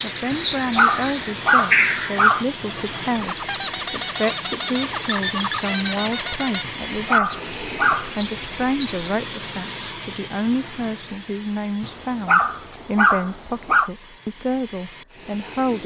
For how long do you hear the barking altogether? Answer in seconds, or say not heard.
6 s.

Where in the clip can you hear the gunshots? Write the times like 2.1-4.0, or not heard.
not heard.